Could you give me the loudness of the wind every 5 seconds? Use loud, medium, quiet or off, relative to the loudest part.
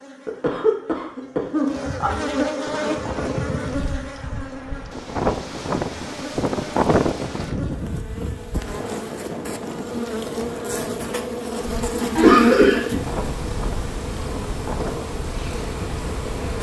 medium, loud, medium, medium.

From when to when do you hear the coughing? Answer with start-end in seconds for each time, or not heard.
0.2-2.1, 12.2-12.8.